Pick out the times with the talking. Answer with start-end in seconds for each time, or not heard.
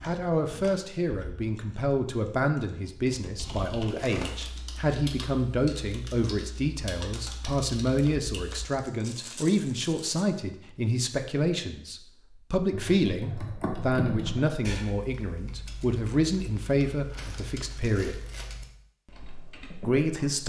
0.0-18.2, 19.8-20.4.